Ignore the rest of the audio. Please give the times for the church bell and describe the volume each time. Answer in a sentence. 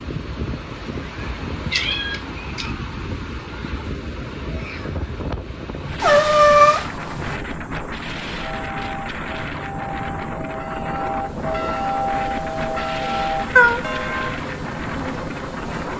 The church bell can be heard from 8.3 to 14.3 s, getting louder.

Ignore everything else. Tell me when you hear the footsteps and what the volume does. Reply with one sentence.
You can't hear the footsteps here.